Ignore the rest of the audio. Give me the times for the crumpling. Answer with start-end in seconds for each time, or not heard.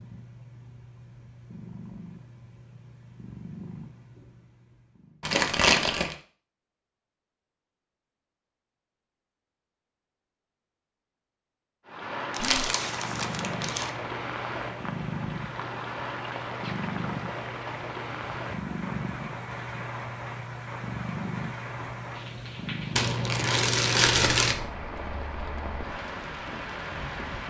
5.2-6.2, 12.3-13.9, 22.9-24.6.